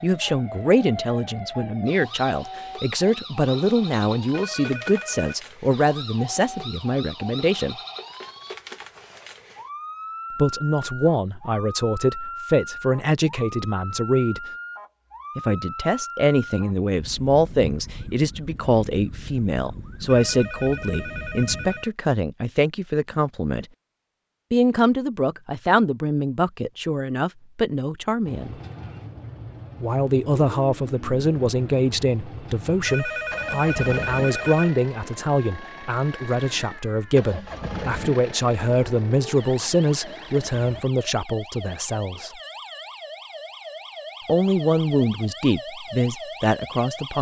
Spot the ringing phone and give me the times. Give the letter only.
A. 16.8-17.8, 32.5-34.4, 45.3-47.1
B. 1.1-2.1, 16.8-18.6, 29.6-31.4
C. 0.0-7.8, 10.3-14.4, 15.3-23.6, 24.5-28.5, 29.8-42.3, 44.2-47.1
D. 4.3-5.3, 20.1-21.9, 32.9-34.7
D.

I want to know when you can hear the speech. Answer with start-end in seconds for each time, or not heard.
0.0-7.8, 10.3-14.4, 15.3-23.6, 24.5-28.5, 29.8-42.3, 44.2-47.1.